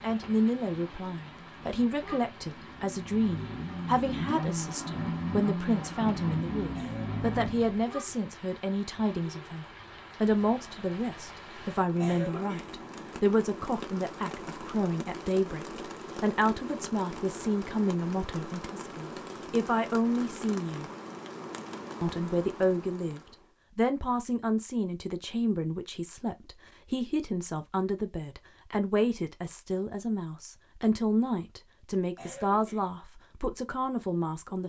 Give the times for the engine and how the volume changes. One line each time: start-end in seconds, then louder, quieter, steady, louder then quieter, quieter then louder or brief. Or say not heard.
0.0-7.8 louder.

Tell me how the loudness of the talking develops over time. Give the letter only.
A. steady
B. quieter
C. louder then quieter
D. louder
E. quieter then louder
A.